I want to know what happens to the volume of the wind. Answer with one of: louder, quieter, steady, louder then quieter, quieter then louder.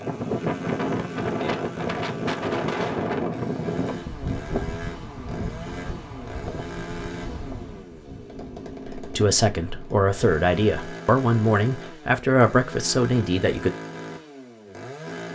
quieter.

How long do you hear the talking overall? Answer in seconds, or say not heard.
5 s.